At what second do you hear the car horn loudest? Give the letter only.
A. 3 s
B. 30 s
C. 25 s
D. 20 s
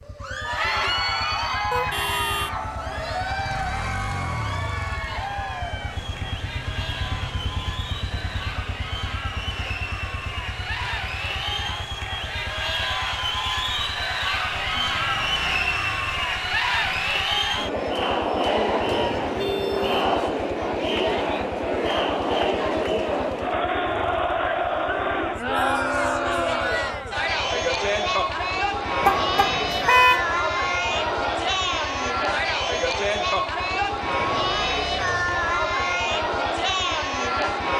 B.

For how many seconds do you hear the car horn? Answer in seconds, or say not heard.
3 s.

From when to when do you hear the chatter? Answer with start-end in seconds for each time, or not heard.
0.1-37.7.